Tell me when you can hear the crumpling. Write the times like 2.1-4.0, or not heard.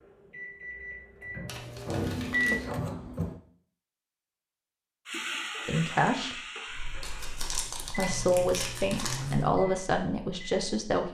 1.4-2.7, 7.0-9.4.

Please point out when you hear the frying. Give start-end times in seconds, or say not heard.
5.0-7.5.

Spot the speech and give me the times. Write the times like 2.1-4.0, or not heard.
5.7-6.4, 7.9-11.1.